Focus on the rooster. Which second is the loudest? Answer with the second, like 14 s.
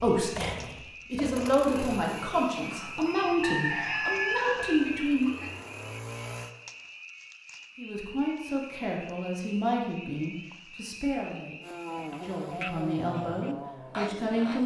4 s.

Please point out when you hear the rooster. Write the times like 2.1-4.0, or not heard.
2.6-5.5.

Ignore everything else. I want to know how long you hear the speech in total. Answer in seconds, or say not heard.
12 s.